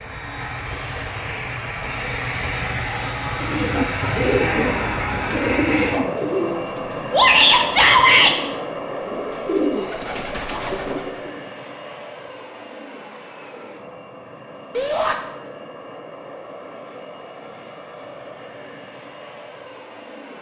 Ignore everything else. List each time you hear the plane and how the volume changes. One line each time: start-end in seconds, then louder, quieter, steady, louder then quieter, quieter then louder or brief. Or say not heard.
0.0-20.3 quieter.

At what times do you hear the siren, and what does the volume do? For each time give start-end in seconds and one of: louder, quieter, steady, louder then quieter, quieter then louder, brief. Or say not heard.
not heard.